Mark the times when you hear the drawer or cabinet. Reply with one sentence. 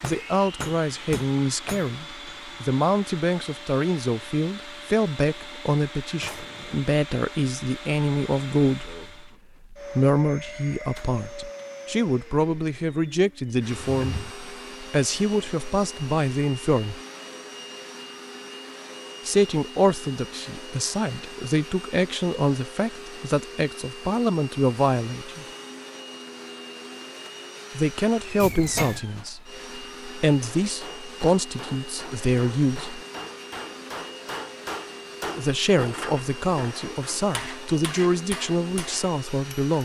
The drawer or cabinet can be heard from 6.2 to 6.9 s, from 13.9 to 14.3 s and from 28.4 to 29.0 s.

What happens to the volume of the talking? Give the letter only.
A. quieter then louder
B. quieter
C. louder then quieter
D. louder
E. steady
E.